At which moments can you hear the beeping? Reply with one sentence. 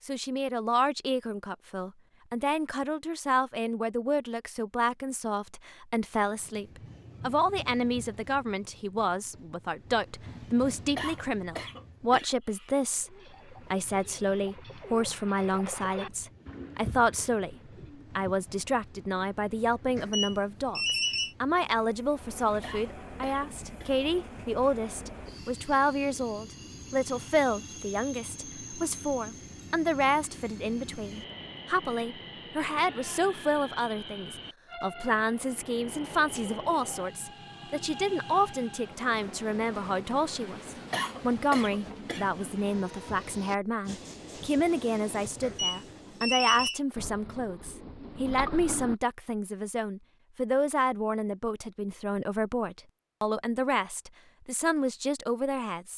You can hear the beeping from 19.9 to 21.4 s and from 45.4 to 46.8 s.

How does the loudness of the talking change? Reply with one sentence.
The volume of the talking stays about the same.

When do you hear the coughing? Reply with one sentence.
You can hear the coughing from 10.9 to 12.8 s, from 22.6 to 23.9 s and from 40.9 to 42.5 s.